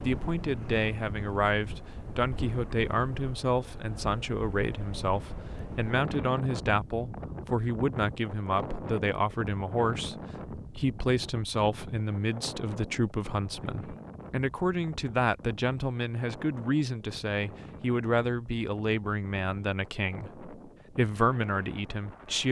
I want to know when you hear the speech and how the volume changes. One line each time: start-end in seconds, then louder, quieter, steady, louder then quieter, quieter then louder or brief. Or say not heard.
0.0-22.4 steady.